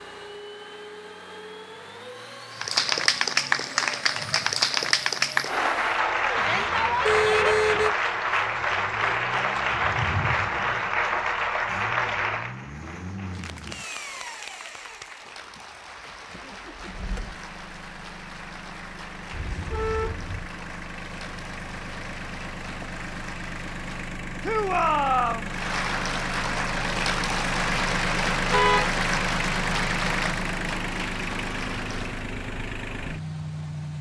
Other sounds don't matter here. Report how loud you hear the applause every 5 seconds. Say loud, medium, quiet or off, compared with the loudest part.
loud, loud, medium, quiet, quiet, medium, medium.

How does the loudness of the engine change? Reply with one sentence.
The volume of the engine goes up.